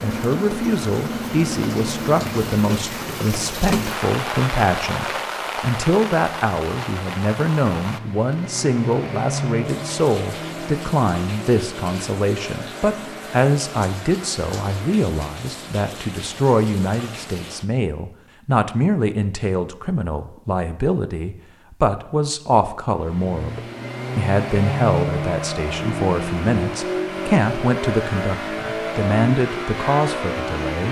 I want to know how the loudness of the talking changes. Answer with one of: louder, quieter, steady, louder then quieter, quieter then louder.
steady.